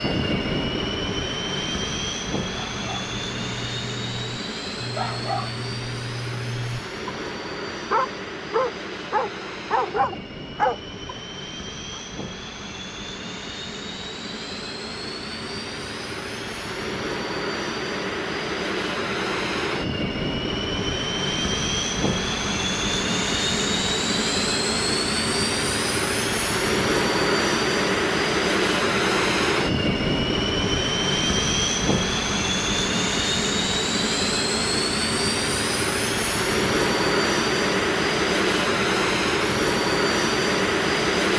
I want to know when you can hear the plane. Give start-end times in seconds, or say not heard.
0.0-41.3.